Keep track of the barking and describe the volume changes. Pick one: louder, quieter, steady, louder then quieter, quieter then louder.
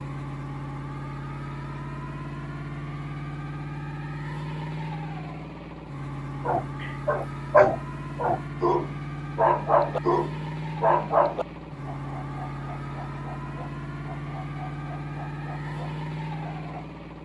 quieter.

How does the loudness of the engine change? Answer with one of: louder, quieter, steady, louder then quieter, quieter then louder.
steady.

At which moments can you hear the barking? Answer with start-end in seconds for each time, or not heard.
6.5-16.9.